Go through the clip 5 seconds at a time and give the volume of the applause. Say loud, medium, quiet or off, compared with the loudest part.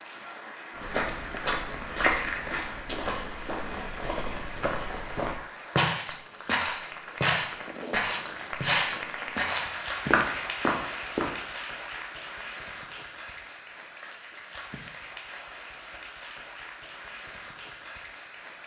medium, loud, loud, medium.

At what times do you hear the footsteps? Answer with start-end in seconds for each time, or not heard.
0.8-11.3.